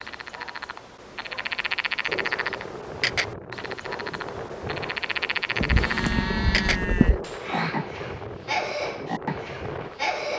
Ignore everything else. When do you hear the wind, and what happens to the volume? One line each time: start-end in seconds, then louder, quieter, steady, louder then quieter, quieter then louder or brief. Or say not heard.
2.0-10.3 steady.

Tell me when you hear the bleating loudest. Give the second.
7 s.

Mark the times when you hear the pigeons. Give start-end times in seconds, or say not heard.
not heard.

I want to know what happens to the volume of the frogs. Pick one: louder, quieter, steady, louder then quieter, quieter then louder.
steady.